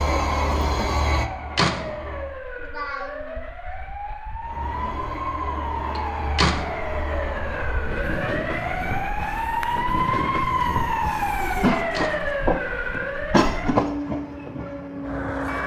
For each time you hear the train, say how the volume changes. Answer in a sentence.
The train can be heard briefly from 0.0 to 2.4 s; and from 4.4 to 15.6 s, getting louder.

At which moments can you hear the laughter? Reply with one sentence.
The laughter can be heard from 2.5 to 3.5 s and from 11.3 to 12.3 s.